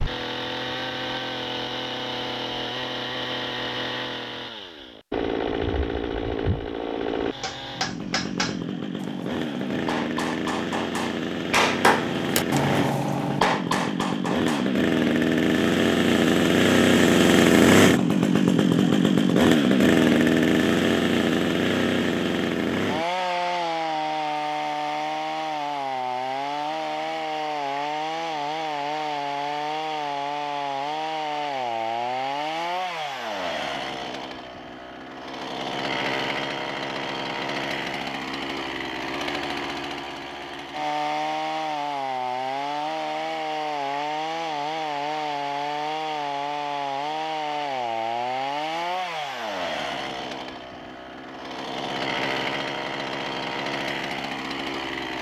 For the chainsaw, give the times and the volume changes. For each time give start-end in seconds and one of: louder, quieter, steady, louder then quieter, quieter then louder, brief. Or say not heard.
0.0-55.1 louder then quieter.